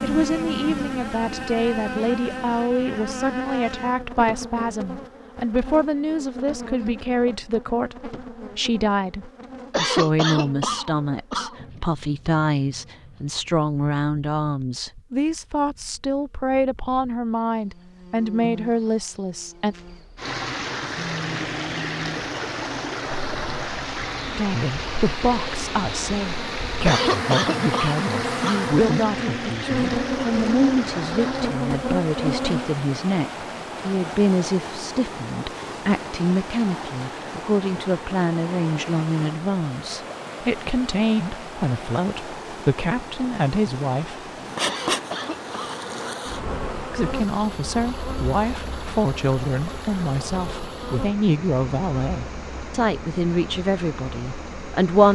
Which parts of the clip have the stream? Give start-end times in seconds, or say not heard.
20.1-55.0.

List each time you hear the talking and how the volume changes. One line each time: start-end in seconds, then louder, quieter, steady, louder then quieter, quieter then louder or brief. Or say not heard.
0.0-19.8 steady
24.4-44.3 steady
46.9-55.0 steady.